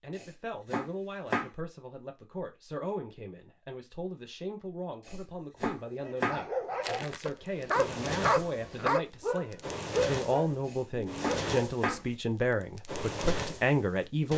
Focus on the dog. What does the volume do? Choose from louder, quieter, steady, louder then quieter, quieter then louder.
louder then quieter.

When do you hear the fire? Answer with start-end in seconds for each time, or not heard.
6.8-14.3.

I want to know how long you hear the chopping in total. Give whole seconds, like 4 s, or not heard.
4 s.